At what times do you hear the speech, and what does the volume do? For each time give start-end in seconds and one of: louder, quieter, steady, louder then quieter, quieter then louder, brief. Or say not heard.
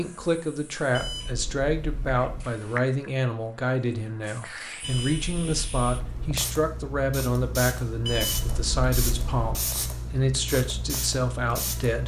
0.0-12.0 steady.